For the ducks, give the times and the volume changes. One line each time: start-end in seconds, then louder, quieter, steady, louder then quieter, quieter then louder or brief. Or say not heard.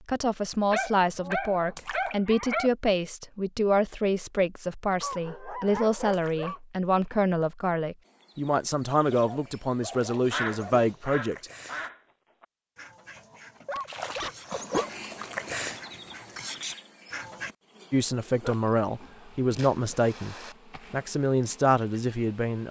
10.3-17.5 quieter then louder.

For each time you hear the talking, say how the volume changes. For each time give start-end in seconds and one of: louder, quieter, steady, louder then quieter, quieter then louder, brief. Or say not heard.
0.1-11.5 steady
17.9-22.6 steady.